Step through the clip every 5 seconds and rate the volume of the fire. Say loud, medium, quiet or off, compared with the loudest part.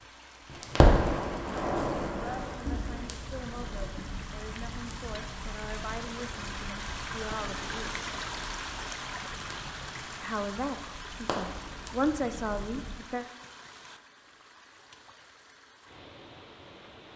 loud, quiet, medium, off.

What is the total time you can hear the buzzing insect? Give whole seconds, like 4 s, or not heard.
not heard.